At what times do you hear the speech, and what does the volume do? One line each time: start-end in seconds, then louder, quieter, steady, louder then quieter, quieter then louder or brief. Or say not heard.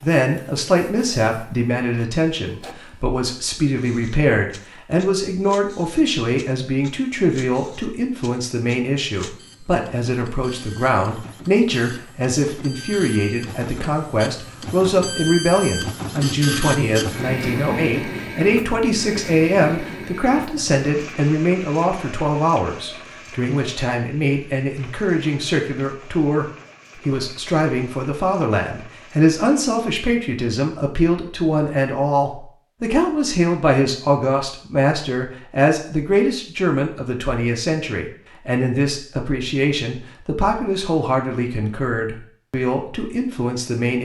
0.0-44.0 steady.